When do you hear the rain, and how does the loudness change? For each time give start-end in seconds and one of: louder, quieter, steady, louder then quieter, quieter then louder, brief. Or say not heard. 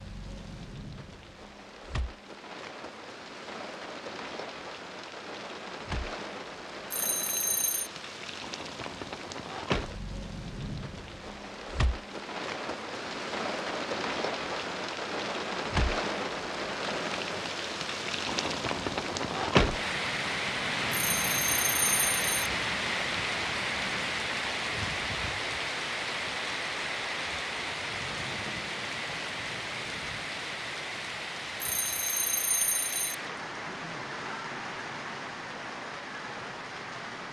0.0-37.2 louder then quieter.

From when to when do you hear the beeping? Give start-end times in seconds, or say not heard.
6.9-7.9, 20.9-22.2, 31.6-33.1.